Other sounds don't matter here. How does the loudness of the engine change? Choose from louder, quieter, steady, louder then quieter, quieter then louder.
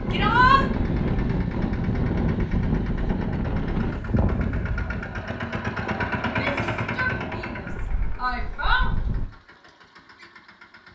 louder then quieter.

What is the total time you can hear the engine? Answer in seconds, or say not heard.
11 s.